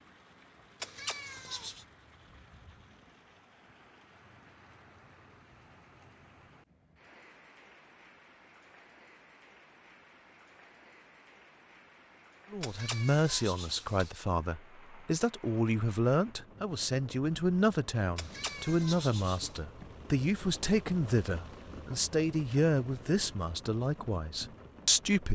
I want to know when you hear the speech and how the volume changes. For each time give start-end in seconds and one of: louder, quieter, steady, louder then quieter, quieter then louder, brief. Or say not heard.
12.5-25.3 steady.